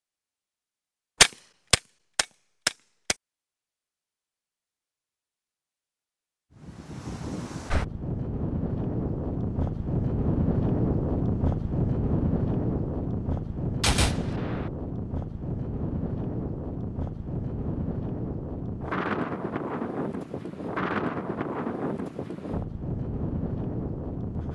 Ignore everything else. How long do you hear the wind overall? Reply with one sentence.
The wind can be heard for 18 seconds in total.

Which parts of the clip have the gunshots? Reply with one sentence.
The gunshots can be heard from 1.2 to 3.1 s and from 13.8 to 14.7 s.